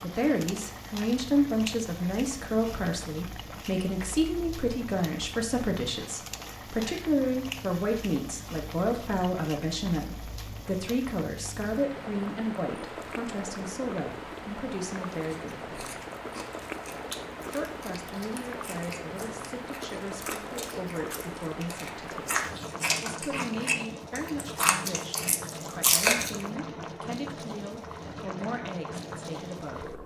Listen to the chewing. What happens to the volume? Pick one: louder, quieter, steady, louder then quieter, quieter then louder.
louder.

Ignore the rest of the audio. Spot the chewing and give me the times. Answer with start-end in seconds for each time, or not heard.
15.1-26.4.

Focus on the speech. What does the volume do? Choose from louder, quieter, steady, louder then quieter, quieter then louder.
quieter.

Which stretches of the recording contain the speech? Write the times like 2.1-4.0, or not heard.
0.0-15.8, 17.4-22.4, 23.0-30.0.